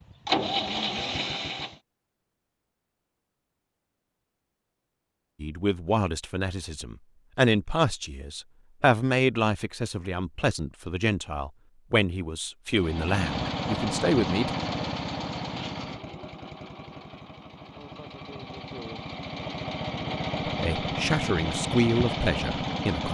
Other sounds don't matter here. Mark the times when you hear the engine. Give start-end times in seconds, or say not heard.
0.0-1.8, 12.7-23.0.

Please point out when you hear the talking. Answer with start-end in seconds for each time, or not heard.
5.4-14.5, 20.4-23.0.